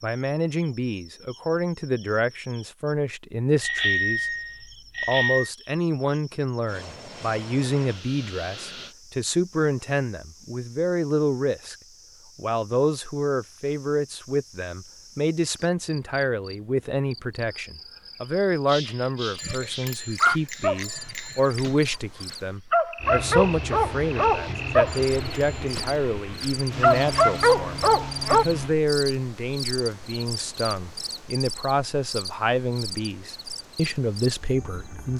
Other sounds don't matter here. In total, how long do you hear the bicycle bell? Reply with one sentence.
The bicycle bell can be heard for 5 seconds in total.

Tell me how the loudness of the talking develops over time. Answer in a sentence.
The loudness of the talking stays about the same.